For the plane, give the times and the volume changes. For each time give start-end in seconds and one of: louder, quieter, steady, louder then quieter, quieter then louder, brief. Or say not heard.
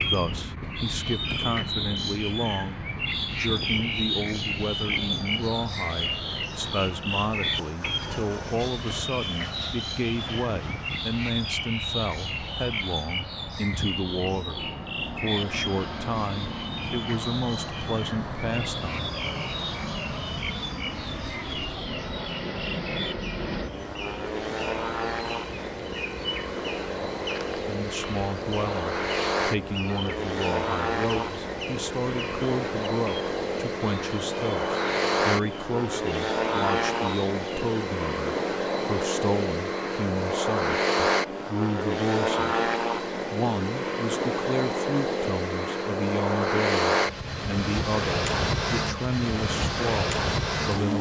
0.1-50.9 louder.